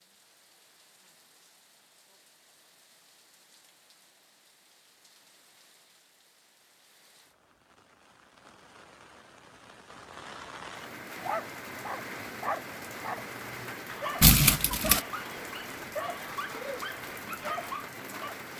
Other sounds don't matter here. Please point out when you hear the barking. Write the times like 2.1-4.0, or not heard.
11.2-18.4.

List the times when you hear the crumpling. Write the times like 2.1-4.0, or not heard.
14.2-15.0.